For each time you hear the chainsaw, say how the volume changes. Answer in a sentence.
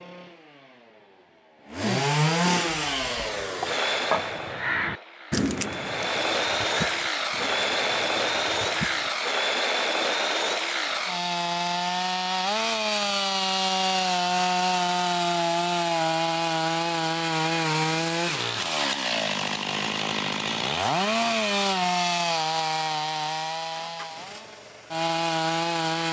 You can hear the chainsaw from 0.0 to 26.0 s, at a steady volume.